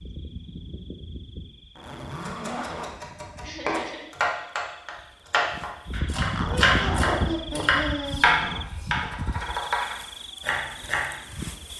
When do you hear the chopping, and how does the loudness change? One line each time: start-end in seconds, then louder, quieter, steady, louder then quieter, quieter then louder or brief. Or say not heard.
2.2-11.2 louder then quieter.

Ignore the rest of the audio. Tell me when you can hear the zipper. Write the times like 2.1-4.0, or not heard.
1.8-3.0, 6.2-8.7.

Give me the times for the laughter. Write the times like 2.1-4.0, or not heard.
3.4-4.1, 6.5-8.2.